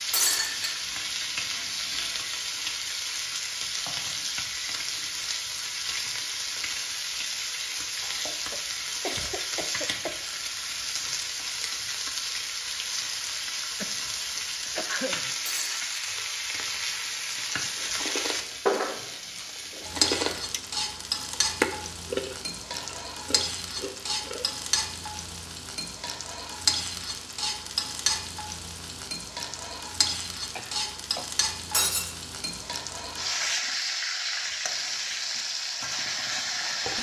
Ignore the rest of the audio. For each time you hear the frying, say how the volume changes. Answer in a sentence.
You can hear the frying from 0.0 to 36.9 s, at a steady volume.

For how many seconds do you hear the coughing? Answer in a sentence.
You can hear the coughing for 4 seconds altogether.